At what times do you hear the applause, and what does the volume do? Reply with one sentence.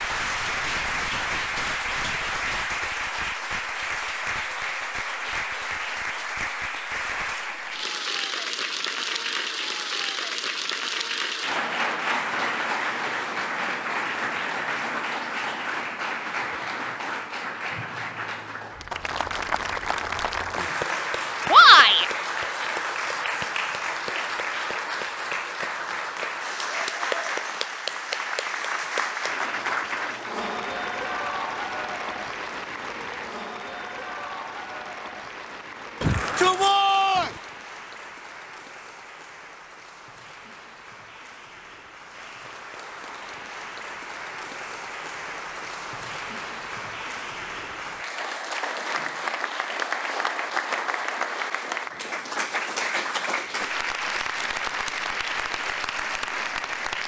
The applause can be heard from 0.0 to 57.0 s, getting quieter then louder.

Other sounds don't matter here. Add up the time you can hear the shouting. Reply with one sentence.
You can hear the shouting for 2 seconds altogether.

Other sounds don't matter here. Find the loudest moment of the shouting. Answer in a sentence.
The loudest moment of the shouting is at 22 seconds.